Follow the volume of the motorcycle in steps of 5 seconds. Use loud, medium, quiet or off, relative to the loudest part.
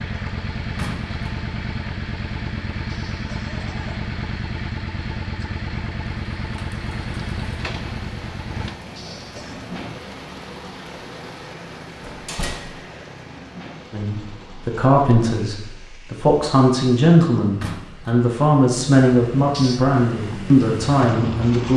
loud, loud, quiet, off, loud.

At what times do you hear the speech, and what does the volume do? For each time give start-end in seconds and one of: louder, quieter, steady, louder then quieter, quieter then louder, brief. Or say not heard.
13.9-21.7 steady.